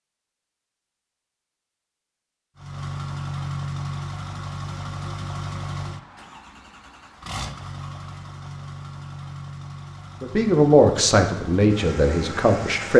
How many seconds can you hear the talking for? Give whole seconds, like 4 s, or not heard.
3 s.